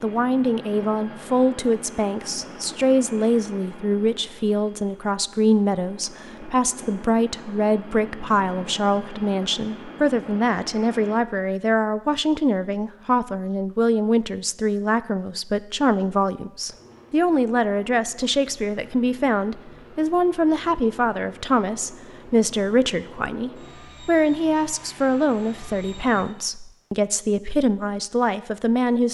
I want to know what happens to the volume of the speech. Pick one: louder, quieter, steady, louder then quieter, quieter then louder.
steady.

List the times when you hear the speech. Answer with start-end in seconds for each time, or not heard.
0.0-29.0.